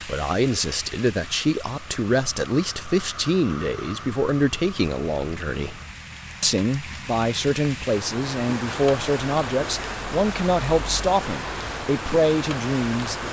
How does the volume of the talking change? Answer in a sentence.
The loudness of the talking stays about the same.